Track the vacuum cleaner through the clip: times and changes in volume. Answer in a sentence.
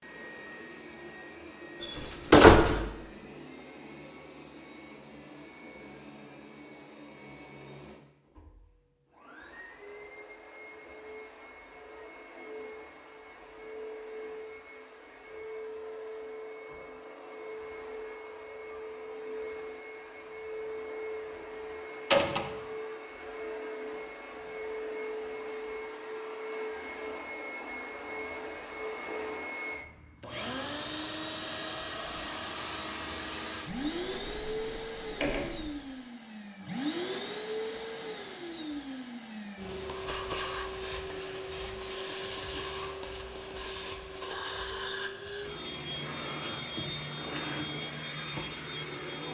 The vacuum cleaner can be heard from 0.0 to 49.2 s, getting louder.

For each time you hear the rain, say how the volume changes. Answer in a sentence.
You can't hear the rain here.